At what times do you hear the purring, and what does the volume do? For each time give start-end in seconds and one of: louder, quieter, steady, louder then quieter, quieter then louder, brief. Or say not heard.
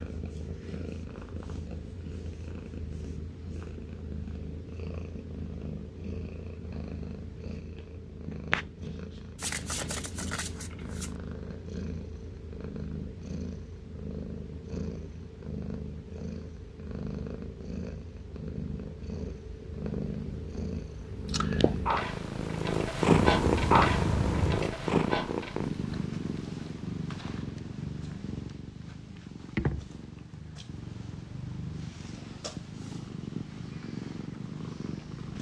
0.0-35.3 louder then quieter.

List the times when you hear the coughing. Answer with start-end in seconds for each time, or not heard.
23.2-24.7.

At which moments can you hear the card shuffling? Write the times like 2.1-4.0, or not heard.
9.3-11.2.